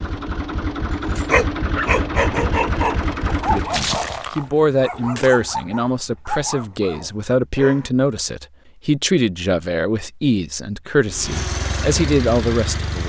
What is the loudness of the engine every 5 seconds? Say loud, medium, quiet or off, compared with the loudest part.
loud, off, loud.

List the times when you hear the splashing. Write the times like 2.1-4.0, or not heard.
3.7-4.5.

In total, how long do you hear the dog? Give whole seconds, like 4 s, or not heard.
7 s.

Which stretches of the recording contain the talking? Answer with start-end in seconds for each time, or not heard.
3.5-13.0.